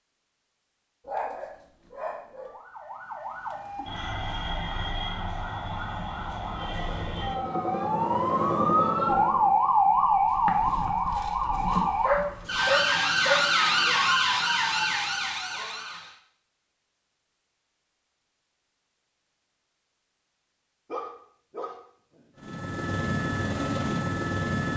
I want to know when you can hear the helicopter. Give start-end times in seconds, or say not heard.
6.5-9.7, 22.4-24.7.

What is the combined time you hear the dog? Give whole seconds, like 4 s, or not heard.
5 s.